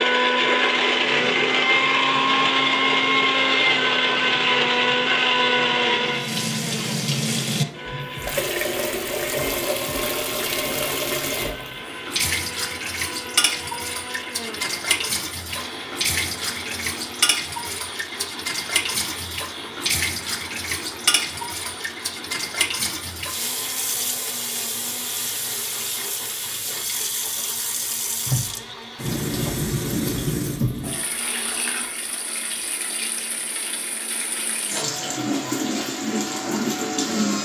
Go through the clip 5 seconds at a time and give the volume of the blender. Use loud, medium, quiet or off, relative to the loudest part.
loud, medium, quiet, quiet, quiet, quiet, quiet, off.